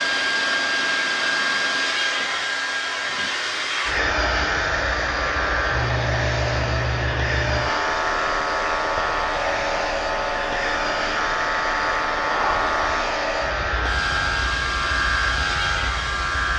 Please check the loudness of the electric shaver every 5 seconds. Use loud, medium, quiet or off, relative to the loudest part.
medium, loud, loud, loud.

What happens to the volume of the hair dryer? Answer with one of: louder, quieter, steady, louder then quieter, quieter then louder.
steady.